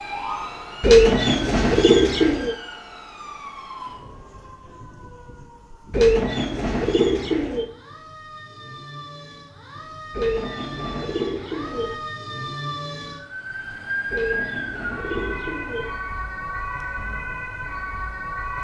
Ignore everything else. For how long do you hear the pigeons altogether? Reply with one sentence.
The pigeons can be heard for 7 seconds in total.